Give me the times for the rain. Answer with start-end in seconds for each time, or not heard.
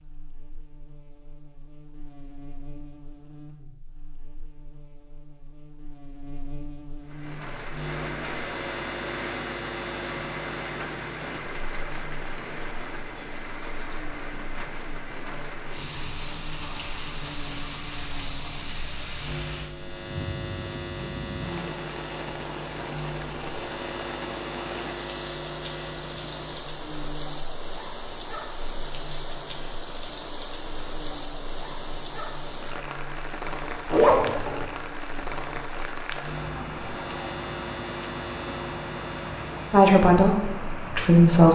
7.0-41.5.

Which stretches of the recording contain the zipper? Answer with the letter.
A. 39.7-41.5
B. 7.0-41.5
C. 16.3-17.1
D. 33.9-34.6
D.